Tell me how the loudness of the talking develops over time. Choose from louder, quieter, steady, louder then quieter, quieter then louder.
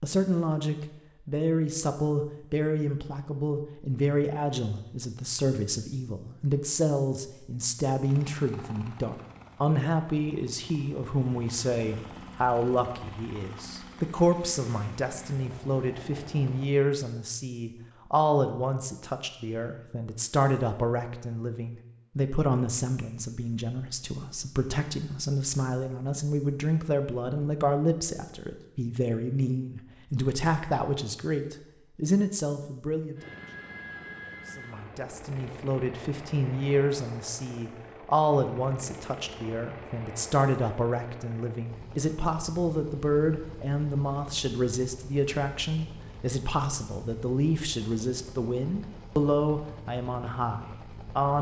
steady.